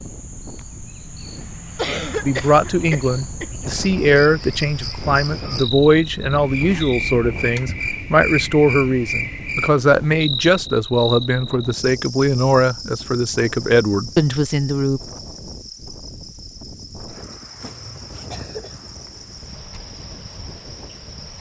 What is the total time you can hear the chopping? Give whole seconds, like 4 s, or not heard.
not heard.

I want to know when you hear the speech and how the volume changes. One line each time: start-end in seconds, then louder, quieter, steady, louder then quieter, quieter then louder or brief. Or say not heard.
2.2-15.0 steady.